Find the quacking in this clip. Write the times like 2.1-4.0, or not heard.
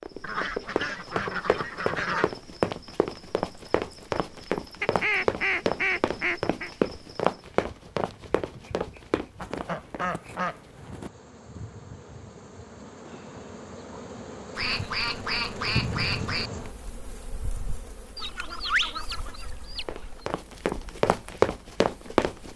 0.2-2.3, 4.8-6.7, 9.4-11.1, 14.6-16.5, 18.1-20.2.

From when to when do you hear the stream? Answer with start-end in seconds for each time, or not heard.
not heard.